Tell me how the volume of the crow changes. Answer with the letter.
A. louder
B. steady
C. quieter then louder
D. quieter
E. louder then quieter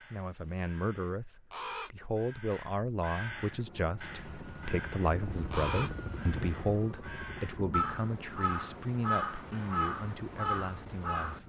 A.